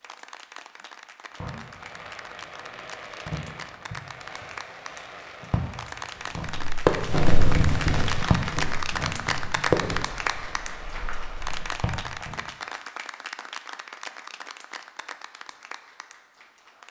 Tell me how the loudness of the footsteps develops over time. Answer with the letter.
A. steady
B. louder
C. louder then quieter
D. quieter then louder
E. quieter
E.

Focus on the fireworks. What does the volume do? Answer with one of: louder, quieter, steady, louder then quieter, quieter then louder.
louder then quieter.